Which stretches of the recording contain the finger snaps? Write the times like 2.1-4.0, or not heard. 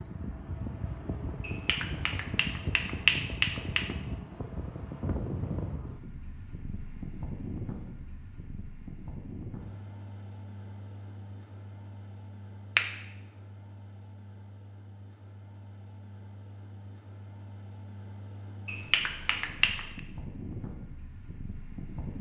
1.4-4.0, 18.6-20.0.